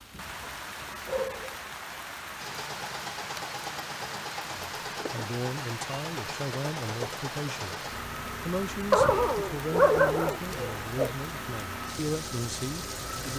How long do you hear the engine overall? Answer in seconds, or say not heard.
11 s.